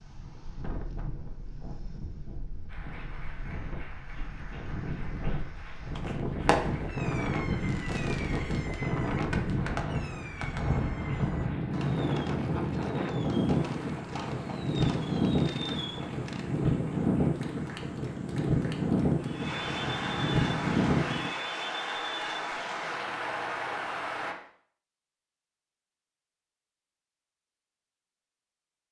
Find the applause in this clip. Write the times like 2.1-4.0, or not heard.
2.6-24.4.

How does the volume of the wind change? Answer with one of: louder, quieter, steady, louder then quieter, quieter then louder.
louder.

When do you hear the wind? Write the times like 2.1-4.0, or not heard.
0.0-21.3.